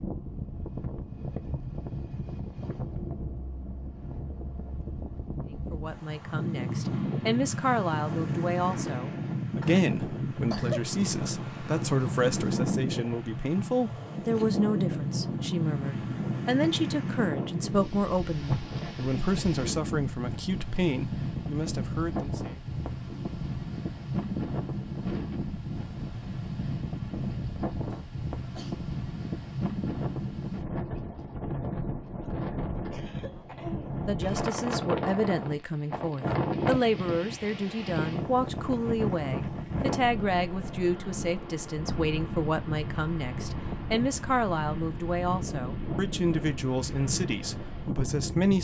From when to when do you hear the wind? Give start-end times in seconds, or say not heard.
0.0-48.6.